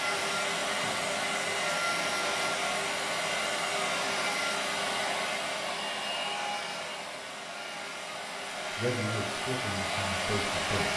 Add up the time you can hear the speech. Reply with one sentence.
You can hear the speech for 2 seconds altogether.